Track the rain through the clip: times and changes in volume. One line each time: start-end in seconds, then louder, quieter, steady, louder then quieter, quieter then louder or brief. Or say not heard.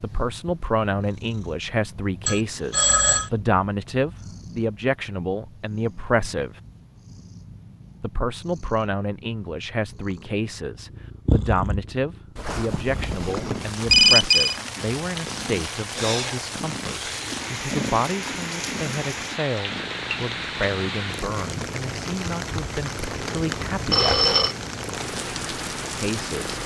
12.8-26.6 steady.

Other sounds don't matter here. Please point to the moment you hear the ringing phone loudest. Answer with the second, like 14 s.
14 s.